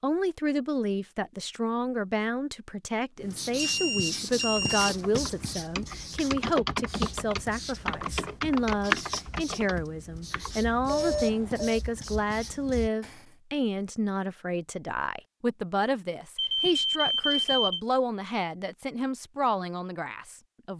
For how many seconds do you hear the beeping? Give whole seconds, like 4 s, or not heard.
4 s.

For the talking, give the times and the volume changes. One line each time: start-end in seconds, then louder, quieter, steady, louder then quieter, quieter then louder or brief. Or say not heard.
0.0-20.7 steady.